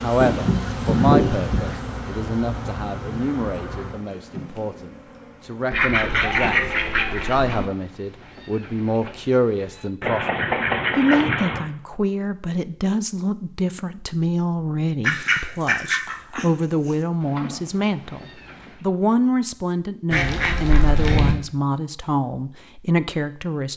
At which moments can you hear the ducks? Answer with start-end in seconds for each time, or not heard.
0.2-1.8, 5.7-7.7, 10.0-11.7, 15.0-16.4, 20.1-21.4.